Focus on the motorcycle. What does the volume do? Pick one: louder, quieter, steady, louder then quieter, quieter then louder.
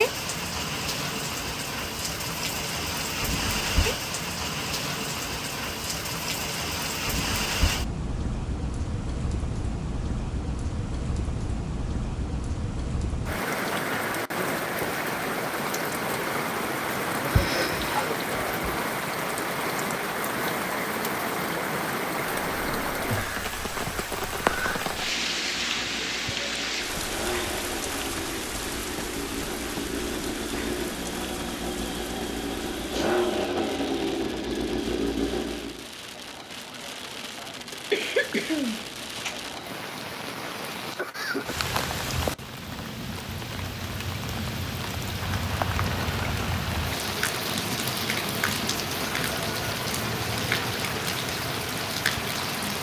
louder.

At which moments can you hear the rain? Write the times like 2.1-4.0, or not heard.
0.0-52.7.